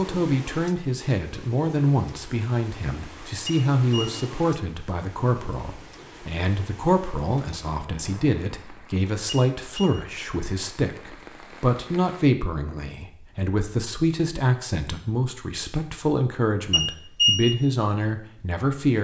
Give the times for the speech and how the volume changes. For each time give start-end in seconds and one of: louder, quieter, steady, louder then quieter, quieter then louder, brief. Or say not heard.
0.0-18.9 steady.